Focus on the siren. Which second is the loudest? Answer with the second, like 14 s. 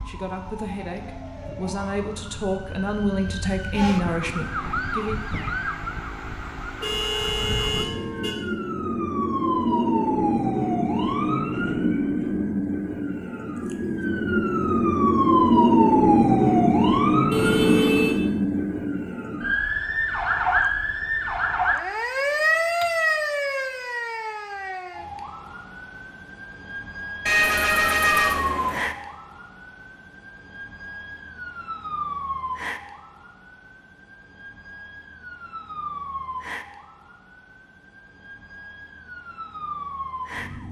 16 s.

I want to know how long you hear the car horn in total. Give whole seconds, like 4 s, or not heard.
4 s.